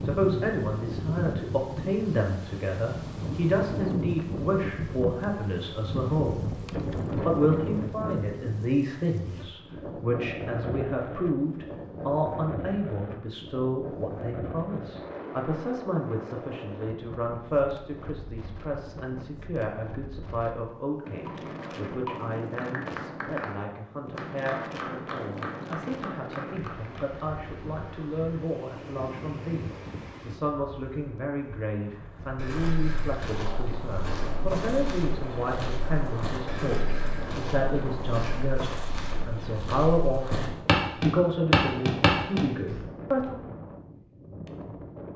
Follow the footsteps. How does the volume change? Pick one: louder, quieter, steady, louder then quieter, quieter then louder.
louder.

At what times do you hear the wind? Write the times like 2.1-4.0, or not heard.
0.0-45.1.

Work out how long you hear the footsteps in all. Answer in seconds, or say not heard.
11 s.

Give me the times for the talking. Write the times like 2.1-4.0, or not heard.
0.0-6.6, 7.2-43.4.